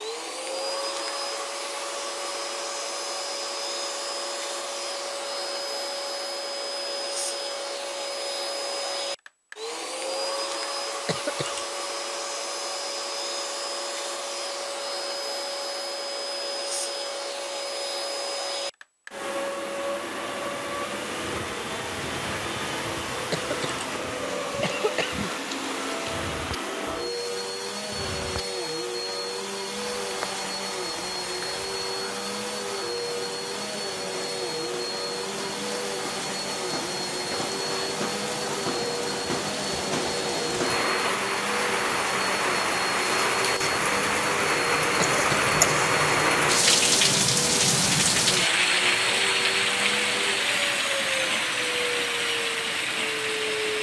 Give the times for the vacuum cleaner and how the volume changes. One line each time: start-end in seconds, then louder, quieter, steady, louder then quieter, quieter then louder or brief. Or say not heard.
0.0-53.7 steady.